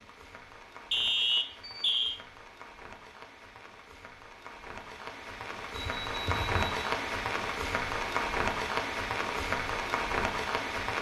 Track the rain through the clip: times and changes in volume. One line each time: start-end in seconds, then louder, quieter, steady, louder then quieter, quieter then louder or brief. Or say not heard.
0.0-10.9 louder.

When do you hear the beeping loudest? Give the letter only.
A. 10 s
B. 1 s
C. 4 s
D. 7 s
B.